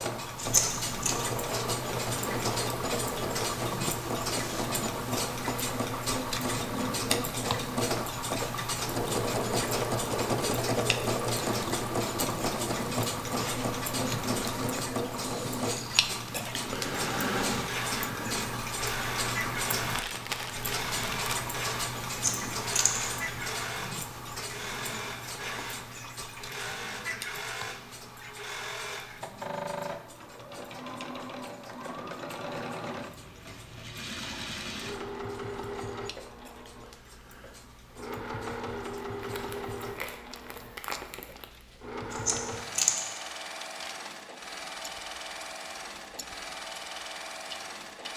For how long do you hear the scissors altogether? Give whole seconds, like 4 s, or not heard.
3 s.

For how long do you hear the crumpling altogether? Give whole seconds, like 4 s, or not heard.
4 s.